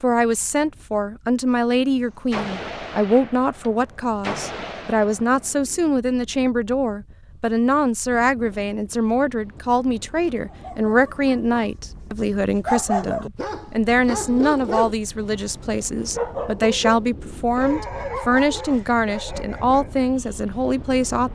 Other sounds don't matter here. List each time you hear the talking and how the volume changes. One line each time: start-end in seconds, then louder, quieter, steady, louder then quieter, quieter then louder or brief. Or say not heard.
0.0-21.3 steady.